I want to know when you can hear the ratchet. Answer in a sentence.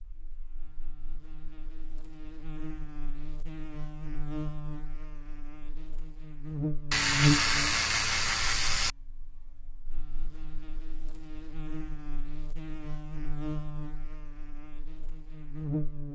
You can hear the ratchet from 6.9 to 8.9 s.